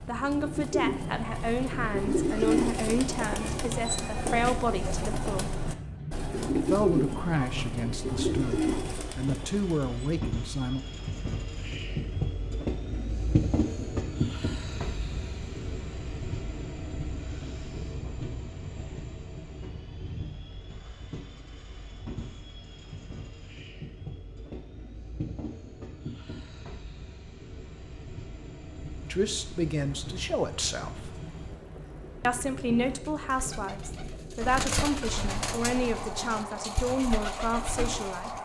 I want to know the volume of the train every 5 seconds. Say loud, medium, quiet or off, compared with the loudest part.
medium, medium, loud, medium, medium, medium, medium, medium.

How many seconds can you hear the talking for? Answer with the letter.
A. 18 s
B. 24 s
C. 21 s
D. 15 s
A.